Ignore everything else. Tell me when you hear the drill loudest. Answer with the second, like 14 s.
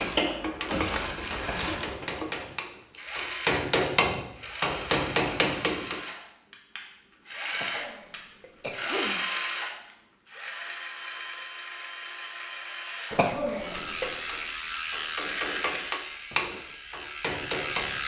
9 s.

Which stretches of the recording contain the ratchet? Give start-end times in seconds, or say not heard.
0.0-2.2, 13.5-18.0.